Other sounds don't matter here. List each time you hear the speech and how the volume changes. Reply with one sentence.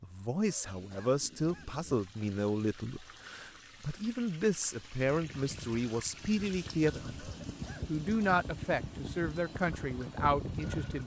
The speech can be heard from 0.0 to 11.0 s, at a steady volume.